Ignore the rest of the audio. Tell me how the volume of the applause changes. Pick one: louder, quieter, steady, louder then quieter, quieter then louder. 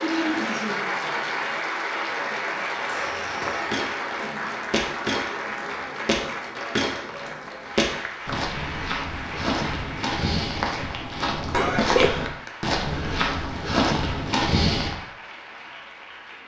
quieter.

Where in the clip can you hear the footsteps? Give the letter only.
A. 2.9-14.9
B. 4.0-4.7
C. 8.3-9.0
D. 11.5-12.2
A.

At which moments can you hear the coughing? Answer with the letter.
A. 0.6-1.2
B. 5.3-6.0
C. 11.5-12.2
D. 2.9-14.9
C.